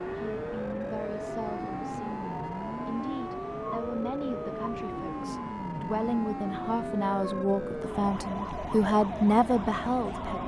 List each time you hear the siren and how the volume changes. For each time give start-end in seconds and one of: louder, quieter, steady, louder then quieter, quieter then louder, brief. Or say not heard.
0.0-10.4 steady.